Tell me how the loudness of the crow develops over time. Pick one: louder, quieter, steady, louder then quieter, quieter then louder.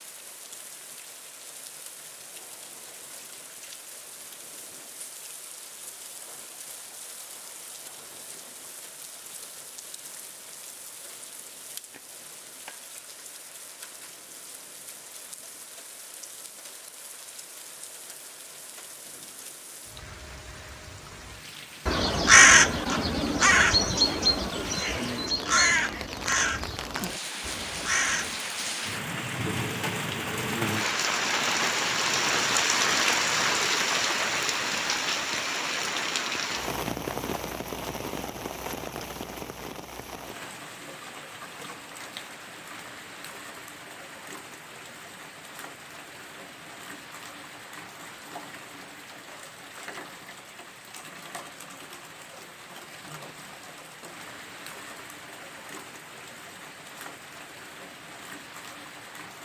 quieter.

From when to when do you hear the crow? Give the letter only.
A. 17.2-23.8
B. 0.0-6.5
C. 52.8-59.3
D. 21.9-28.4
D.